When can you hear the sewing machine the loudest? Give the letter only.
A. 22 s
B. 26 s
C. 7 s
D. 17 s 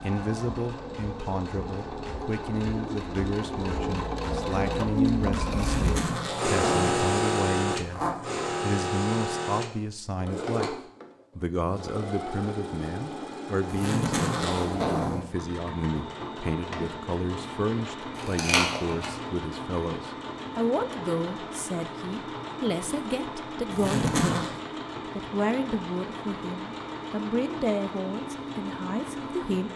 C.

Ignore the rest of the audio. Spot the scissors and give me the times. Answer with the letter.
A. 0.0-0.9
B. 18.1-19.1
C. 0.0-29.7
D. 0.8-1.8
B.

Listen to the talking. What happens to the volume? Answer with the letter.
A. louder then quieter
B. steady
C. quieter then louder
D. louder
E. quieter
B.